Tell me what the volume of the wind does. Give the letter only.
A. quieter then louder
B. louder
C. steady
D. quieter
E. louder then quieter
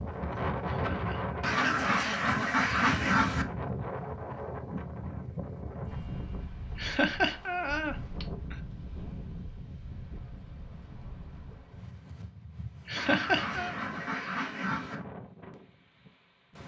D.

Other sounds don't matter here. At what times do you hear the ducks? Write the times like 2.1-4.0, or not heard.
1.4-3.5, 12.9-15.0.